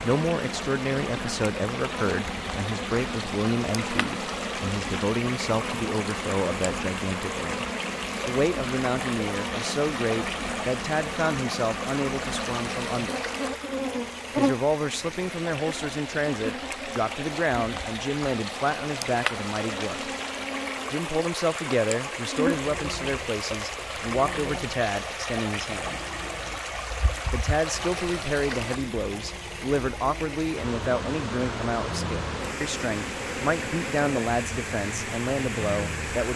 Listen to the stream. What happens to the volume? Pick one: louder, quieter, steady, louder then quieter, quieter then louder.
steady.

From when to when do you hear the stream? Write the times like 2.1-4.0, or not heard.
0.0-36.3.